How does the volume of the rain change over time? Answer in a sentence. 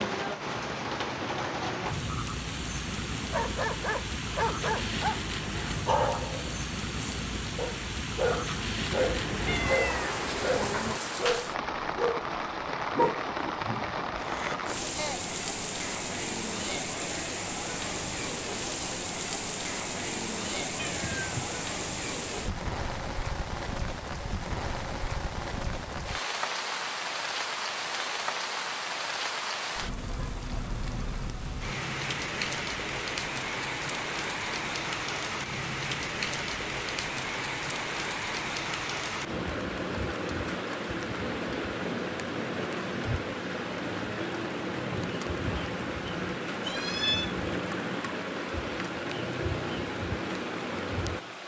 The loudness of the rain stays about the same.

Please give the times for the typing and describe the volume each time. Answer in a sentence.
You can't hear the typing here.